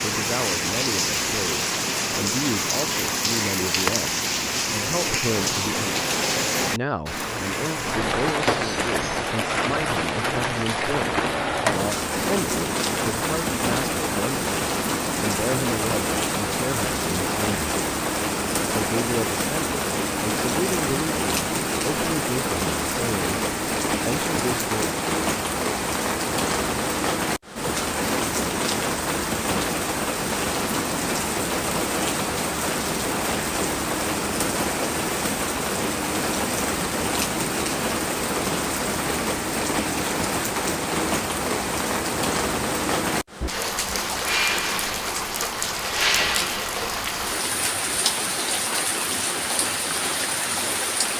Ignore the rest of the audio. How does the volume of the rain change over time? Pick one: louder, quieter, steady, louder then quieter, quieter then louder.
steady.